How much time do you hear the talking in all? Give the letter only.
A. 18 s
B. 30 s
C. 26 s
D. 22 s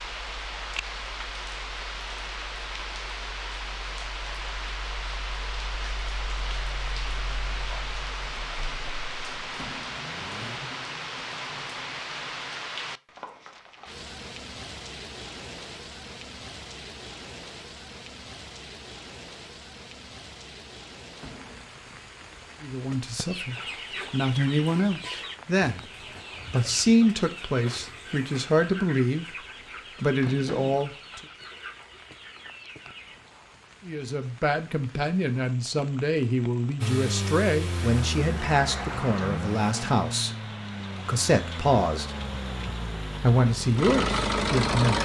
A.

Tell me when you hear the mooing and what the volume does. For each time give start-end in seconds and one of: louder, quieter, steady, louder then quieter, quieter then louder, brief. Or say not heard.
not heard.